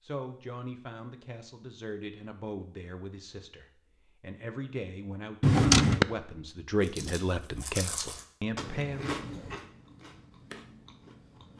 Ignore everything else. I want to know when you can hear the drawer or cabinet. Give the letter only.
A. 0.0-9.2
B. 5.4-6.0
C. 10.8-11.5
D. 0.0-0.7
B.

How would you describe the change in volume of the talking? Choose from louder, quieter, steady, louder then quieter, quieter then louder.
louder.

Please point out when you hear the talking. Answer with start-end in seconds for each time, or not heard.
0.0-9.2.